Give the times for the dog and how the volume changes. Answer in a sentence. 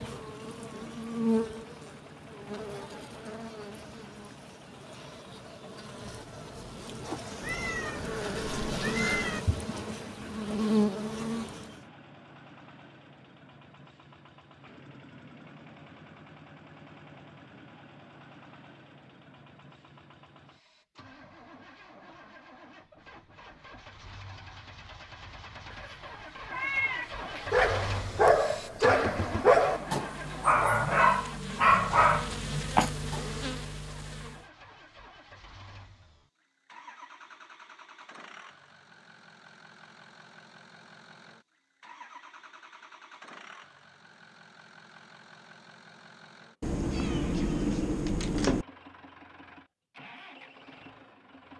The dog can be heard from 27.5 to 33.2 s, at a steady volume.